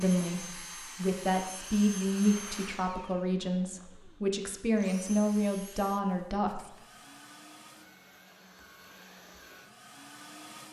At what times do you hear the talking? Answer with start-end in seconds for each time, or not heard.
0.0-6.7.